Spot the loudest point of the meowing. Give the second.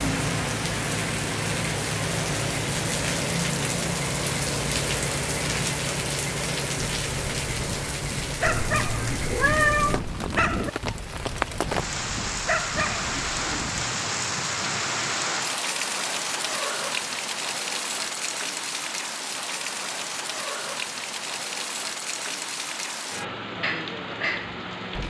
10 s.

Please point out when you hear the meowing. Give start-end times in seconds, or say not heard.
8.4-10.2.